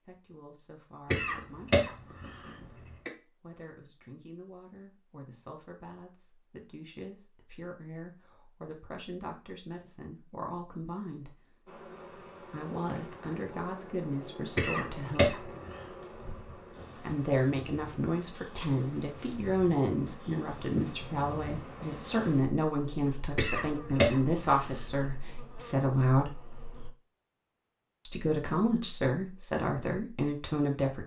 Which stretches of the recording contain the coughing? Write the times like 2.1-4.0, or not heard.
1.1-3.1, 14.6-15.8, 23.4-24.9.